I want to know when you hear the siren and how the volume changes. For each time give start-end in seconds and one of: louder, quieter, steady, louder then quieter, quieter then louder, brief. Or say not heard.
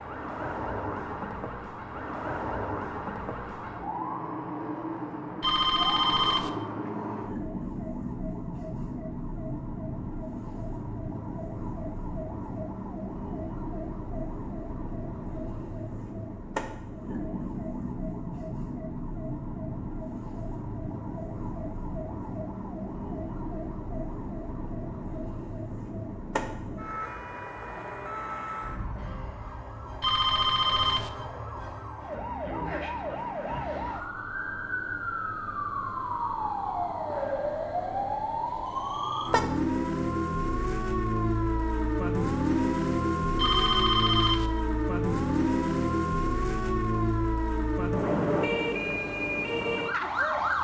0.0-50.6 louder.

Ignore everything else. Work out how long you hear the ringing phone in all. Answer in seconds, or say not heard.
3 s.